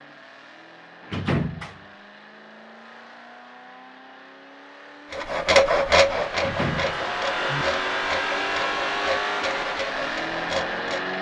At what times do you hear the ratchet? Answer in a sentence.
You can't hear the ratchet here.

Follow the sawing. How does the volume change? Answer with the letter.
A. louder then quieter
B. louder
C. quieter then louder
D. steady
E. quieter
E.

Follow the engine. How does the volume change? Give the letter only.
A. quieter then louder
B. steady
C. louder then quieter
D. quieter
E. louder
E.